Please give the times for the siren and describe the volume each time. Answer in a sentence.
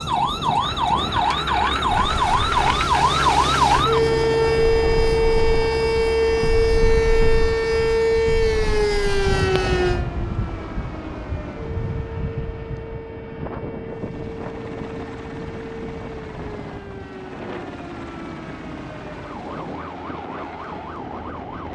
You can hear the siren from 0.0 to 21.7 s, getting quieter.